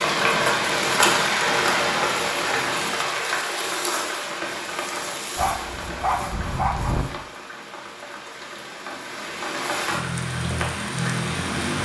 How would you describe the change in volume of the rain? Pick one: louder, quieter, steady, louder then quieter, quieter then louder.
quieter then louder.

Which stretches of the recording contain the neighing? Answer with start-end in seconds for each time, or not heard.
not heard.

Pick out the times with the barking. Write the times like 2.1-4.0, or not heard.
5.3-7.0.